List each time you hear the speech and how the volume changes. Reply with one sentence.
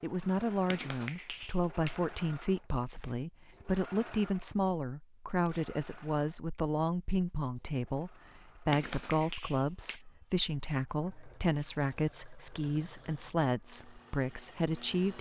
The speech can be heard from 0.0 to 15.1 s, at a steady volume.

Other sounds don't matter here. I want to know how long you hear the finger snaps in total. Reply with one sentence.
The finger snaps can be heard for 3 seconds in total.